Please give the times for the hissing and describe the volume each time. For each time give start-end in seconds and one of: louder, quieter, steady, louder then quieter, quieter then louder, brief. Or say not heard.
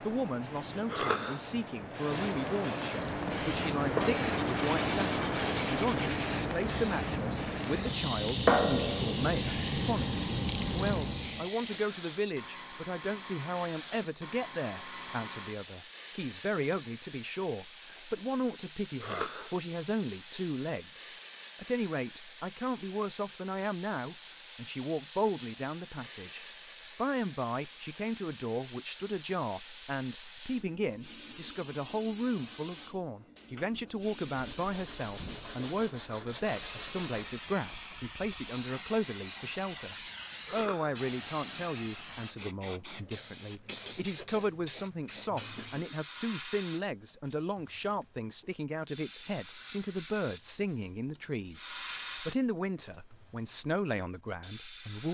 0.0-55.0 quieter.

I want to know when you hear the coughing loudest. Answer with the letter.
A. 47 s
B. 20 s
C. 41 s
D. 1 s
D.